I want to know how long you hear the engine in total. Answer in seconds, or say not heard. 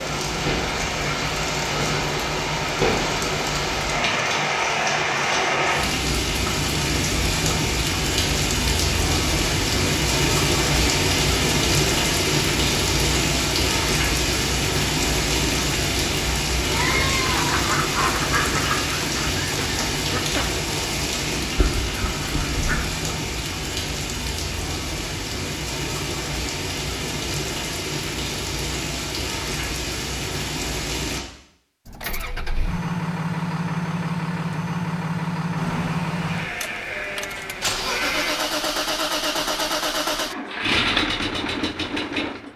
11 s.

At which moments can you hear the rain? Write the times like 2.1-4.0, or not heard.
0.0-31.2.